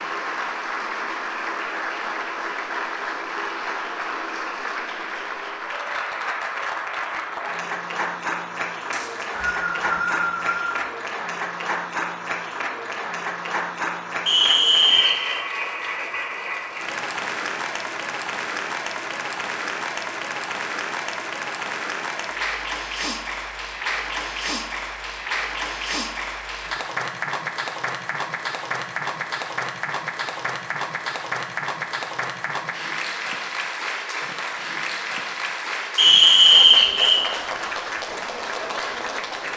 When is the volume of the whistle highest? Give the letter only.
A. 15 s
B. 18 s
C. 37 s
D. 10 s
C.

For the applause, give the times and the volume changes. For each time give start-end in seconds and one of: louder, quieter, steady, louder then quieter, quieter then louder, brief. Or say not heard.
0.0-39.5 steady.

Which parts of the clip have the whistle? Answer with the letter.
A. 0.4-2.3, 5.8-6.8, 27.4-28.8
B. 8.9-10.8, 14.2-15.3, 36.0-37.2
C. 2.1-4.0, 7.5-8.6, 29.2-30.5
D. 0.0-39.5
B.